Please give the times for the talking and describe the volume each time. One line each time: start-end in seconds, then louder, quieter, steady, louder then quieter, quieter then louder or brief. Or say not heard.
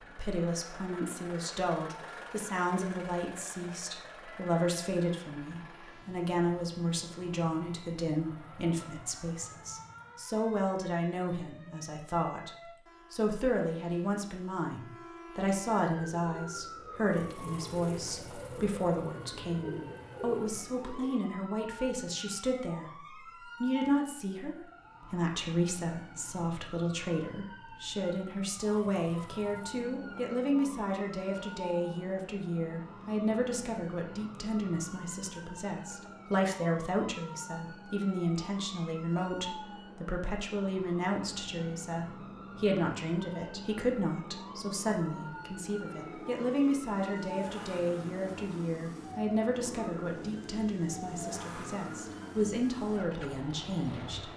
0.0-54.3 steady.